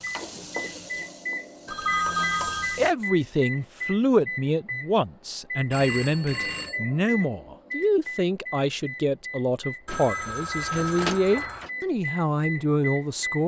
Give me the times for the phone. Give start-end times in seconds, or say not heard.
1.6-2.8, 5.7-6.8, 9.8-11.7.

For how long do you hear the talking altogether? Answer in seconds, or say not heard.
11 s.